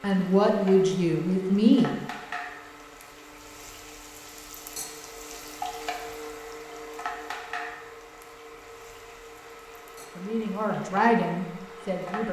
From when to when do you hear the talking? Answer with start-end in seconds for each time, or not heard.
0.0-1.9, 10.2-12.2.